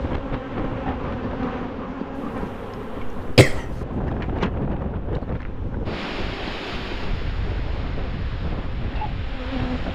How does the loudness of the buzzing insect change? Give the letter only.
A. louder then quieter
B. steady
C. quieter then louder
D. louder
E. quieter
E.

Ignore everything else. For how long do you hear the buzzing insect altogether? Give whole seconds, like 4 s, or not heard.
10 s.